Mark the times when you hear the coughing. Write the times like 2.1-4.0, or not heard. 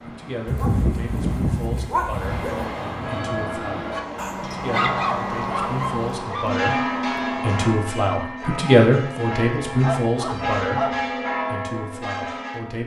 not heard.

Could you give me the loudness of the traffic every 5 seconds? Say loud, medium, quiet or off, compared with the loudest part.
loud, loud, off.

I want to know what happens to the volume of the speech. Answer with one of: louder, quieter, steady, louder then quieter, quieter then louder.
louder then quieter.